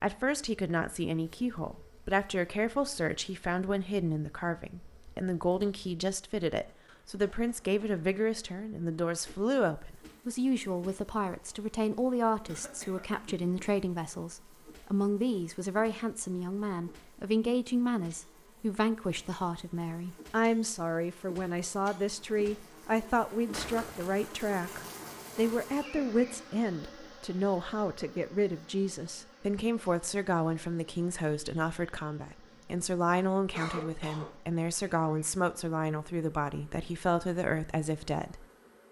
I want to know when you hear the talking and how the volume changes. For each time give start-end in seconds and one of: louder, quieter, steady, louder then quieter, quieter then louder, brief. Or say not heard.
0.0-38.8 steady.